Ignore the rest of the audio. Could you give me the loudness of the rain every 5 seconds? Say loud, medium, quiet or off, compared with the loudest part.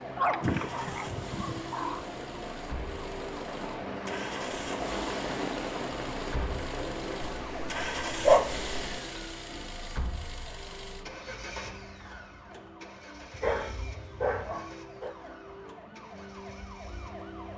loud, loud, off, off.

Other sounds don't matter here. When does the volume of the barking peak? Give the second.
8 s.